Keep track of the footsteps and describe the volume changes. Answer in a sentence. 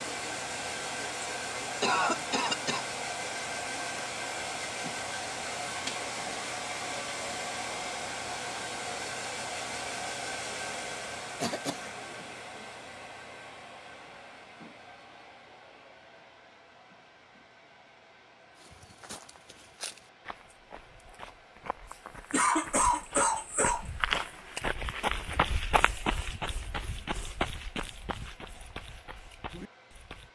The volume of the footsteps goes up, then down.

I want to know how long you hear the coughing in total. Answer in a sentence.
The coughing can be heard for 3 seconds in total.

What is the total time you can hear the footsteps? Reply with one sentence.
You can hear the footsteps for 12 seconds altogether.